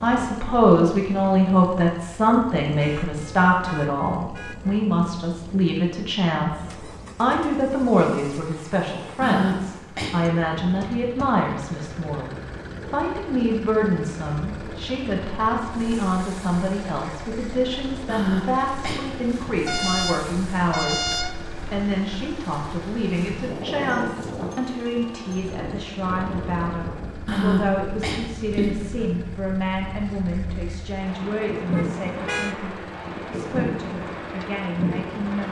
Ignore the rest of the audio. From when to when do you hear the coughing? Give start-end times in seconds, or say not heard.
9.2-10.2, 18.1-19.4, 27.2-28.7.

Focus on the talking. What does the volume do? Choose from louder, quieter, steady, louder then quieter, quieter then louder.
quieter.